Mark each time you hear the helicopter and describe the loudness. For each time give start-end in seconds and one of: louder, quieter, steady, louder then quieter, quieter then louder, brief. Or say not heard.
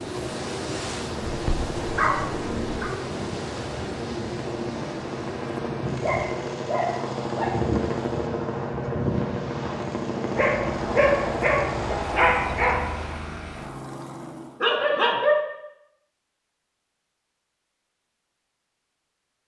0.0-14.7 louder then quieter.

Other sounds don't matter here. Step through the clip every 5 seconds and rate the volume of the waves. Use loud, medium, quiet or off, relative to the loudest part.
loud, medium, medium, off.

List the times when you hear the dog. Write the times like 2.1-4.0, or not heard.
1.2-2.9, 5.8-7.8, 10.3-12.8, 14.6-15.3.